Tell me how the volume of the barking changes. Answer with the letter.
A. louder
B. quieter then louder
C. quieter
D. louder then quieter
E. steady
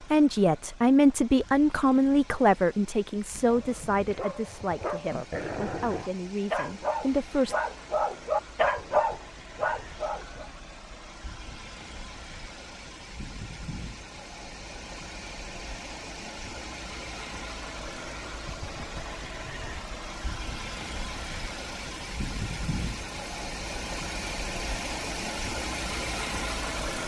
A.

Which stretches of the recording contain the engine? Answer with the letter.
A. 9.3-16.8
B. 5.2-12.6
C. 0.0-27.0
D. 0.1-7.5
C.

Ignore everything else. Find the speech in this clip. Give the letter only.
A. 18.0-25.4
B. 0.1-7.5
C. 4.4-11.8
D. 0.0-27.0
B.